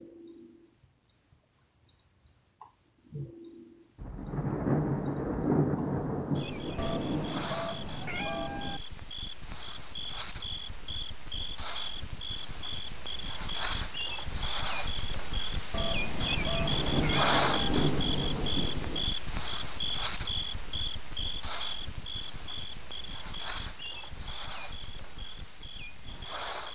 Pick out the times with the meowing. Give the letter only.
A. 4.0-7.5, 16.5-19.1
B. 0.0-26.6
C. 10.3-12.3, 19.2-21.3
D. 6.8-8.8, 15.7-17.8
D.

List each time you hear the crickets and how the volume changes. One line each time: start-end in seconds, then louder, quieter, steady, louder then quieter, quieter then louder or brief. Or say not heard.
0.0-26.6 louder then quieter.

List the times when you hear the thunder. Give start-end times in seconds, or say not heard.
4.0-7.5, 16.5-19.1.